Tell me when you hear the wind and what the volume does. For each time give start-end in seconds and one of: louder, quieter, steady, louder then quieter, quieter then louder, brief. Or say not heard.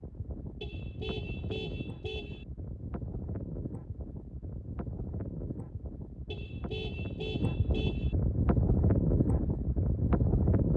0.0-10.7 louder.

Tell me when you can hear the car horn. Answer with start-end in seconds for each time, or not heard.
0.6-2.5, 6.3-8.2.